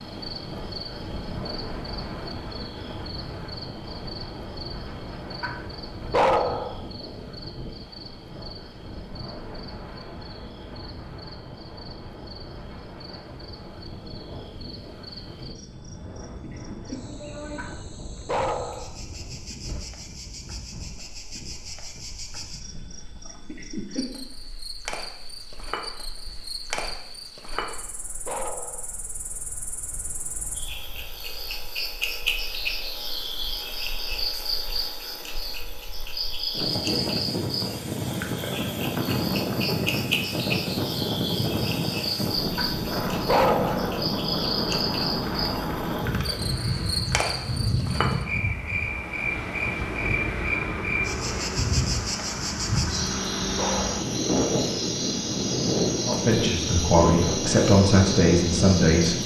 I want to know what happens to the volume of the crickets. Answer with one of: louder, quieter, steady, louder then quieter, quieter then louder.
louder.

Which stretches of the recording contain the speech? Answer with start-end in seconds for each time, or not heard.
56.0-59.2.